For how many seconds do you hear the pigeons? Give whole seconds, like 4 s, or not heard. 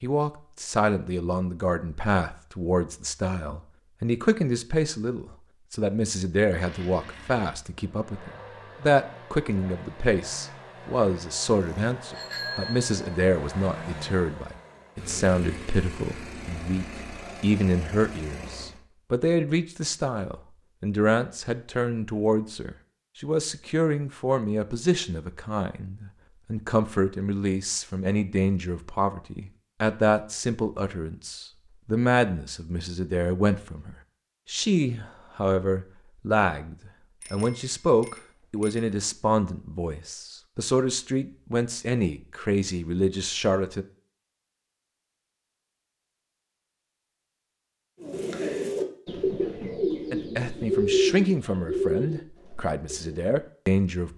5 s.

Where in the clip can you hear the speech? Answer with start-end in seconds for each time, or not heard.
0.0-43.9, 50.1-54.1.